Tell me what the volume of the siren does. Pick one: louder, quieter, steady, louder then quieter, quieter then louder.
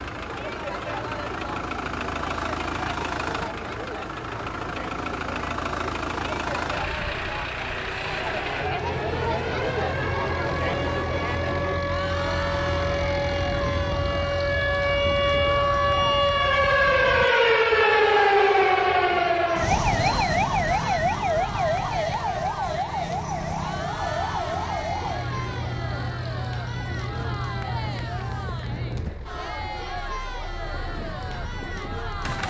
louder then quieter.